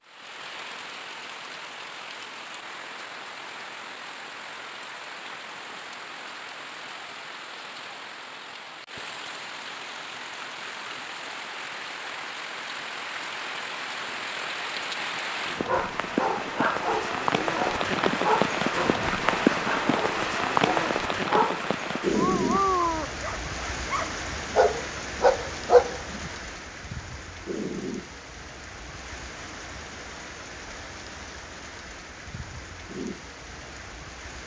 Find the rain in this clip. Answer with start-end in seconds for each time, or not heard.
0.0-34.4.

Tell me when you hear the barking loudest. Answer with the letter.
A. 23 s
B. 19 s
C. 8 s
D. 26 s
D.